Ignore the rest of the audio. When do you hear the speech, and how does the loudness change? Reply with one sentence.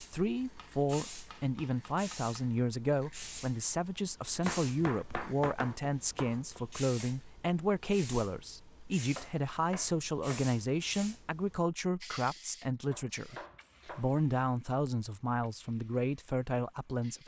The speech can be heard from 0.1 to 17.2 s, at a steady volume.